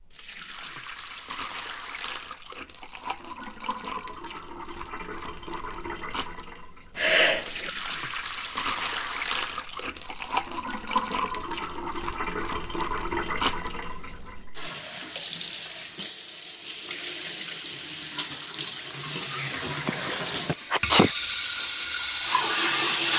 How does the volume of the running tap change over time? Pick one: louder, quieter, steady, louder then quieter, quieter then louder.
louder.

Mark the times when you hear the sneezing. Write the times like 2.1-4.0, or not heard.
7.0-7.7, 19.9-21.1.